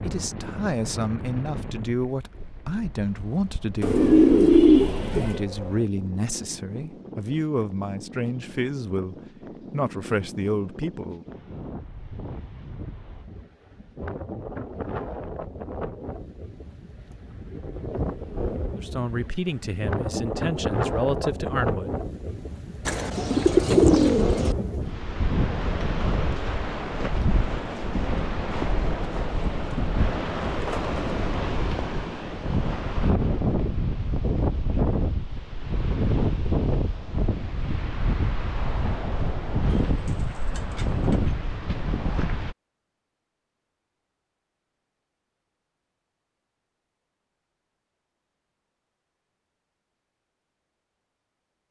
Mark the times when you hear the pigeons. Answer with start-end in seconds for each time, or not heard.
3.8-5.4, 22.9-24.6, 39.7-41.3.